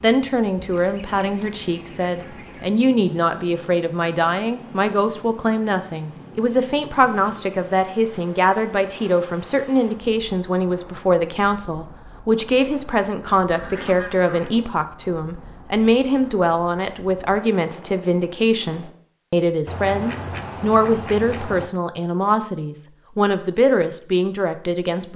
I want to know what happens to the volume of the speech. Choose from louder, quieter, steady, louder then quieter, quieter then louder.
steady.